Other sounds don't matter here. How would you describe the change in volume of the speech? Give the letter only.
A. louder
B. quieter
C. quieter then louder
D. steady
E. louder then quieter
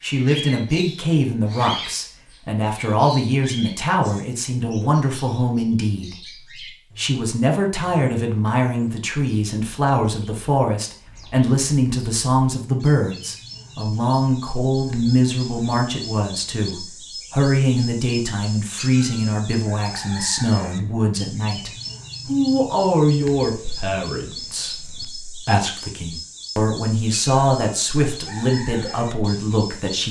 D.